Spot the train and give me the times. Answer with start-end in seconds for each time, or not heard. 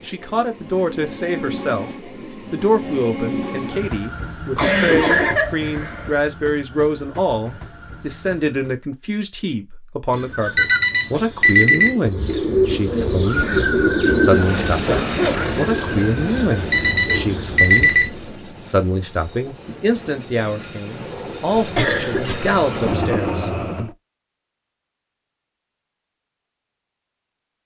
0.0-8.8, 14.2-23.9.